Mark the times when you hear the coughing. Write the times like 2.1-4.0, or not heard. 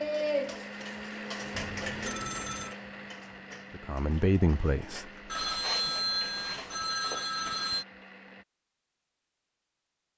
not heard.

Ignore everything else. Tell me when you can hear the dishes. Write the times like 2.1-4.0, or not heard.
0.0-7.8.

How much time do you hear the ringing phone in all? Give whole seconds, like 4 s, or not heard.
4 s.